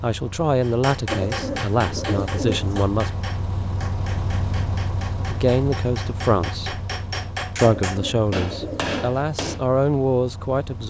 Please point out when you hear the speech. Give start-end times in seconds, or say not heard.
0.0-3.1, 5.2-6.8, 7.5-10.8.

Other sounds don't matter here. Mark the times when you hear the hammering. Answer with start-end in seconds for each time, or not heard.
0.6-9.7.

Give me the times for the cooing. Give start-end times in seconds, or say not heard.
1.1-2.8, 7.6-9.0.